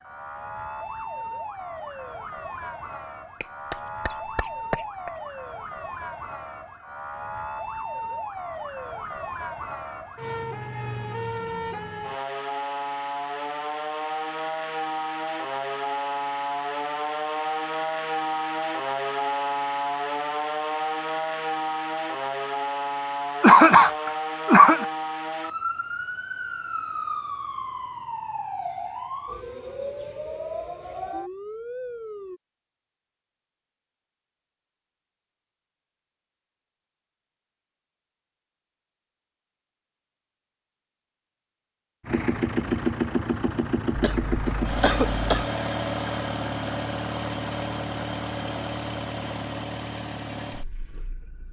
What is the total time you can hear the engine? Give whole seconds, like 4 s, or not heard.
9 s.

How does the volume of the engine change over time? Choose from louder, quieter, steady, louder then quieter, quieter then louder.
quieter.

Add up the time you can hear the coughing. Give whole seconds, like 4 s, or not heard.
5 s.